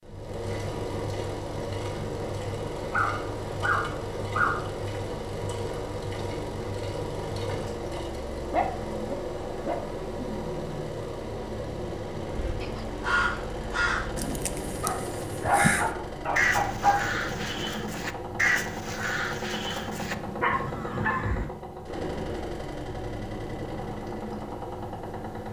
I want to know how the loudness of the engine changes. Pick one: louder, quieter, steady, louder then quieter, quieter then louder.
steady.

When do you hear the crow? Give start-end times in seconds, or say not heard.
12.3-21.5.